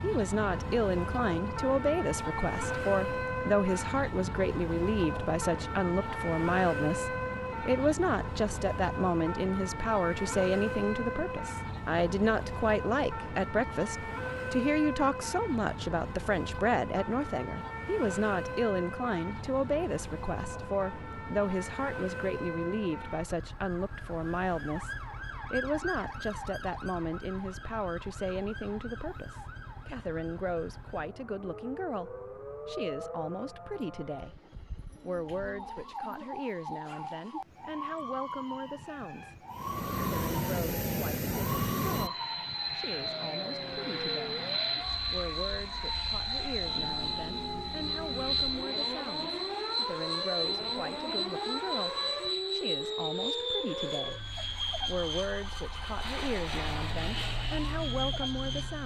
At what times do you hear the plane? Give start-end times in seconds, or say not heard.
39.5-58.8.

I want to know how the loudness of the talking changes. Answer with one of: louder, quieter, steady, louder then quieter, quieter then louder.
quieter.